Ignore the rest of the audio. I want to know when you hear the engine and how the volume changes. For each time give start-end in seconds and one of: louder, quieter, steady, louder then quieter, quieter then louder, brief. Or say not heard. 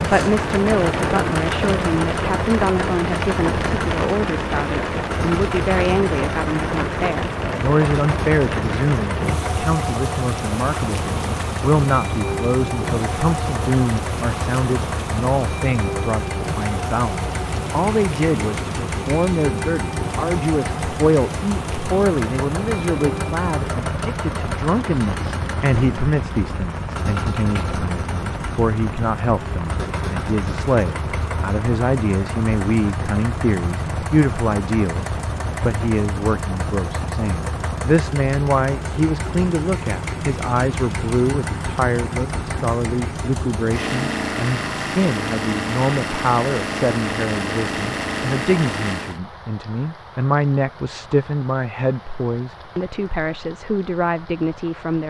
0.0-49.2 steady.